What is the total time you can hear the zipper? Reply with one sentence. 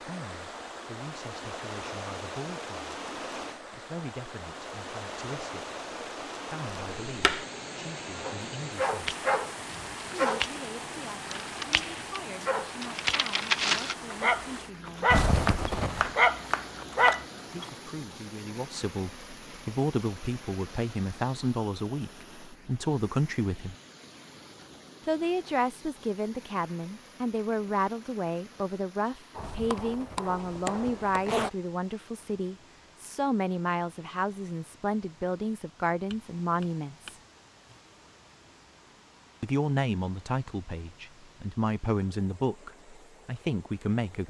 You can hear the zipper for 3 seconds altogether.